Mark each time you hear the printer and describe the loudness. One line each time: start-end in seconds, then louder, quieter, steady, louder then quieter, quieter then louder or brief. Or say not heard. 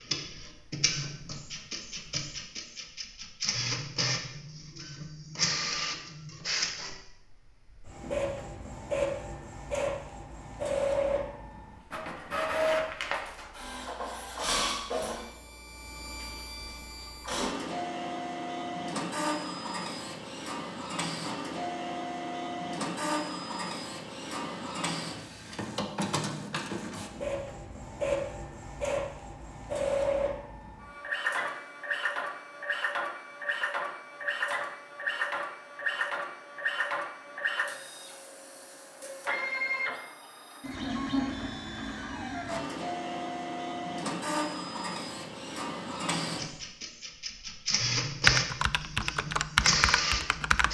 0.0-50.6 steady.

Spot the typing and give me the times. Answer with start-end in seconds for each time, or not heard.
48.2-50.6.